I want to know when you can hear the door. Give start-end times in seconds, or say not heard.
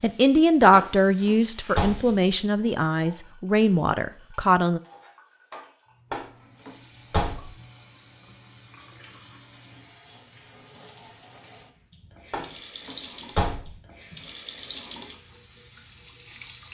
0.7-2.1, 6.1-7.5, 12.3-13.7.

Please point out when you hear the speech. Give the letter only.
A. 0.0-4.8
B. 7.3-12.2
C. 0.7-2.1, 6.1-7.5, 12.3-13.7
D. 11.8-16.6
A.